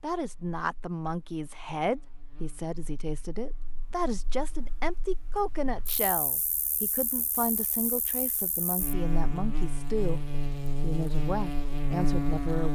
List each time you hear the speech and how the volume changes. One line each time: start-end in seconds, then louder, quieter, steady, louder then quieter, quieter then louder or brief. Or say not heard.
0.0-10.2 steady
10.8-12.6 brief.